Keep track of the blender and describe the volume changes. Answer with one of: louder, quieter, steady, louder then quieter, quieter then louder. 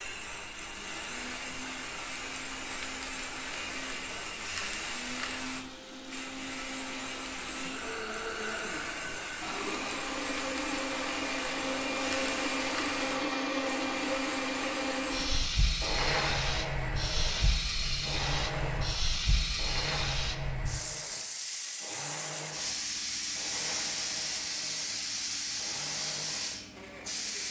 louder then quieter.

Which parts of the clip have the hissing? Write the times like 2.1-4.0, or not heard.
0.0-27.4.